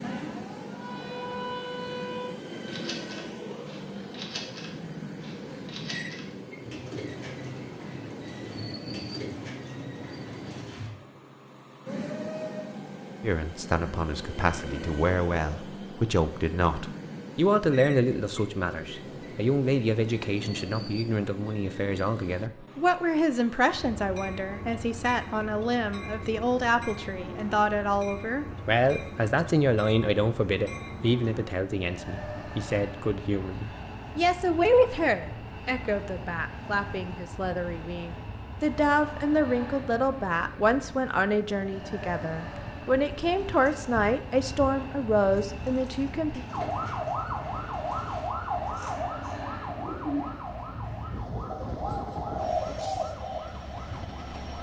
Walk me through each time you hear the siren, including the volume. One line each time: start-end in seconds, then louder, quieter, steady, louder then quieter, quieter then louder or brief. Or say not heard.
0.0-2.4 brief
46.5-54.5 quieter.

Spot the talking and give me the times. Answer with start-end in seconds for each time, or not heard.
13.2-46.5.